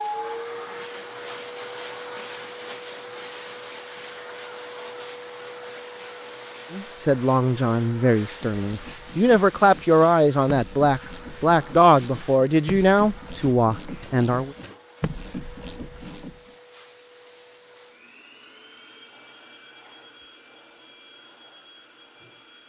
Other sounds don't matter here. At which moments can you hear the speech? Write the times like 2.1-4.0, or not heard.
6.7-14.6.